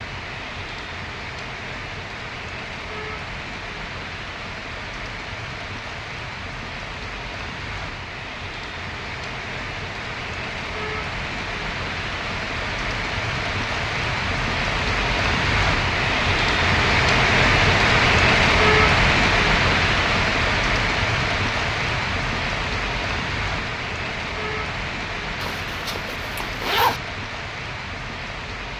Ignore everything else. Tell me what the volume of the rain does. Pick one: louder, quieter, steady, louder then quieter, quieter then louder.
louder then quieter.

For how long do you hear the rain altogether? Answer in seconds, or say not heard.
29 s.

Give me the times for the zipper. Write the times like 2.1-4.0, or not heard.
25.4-27.0.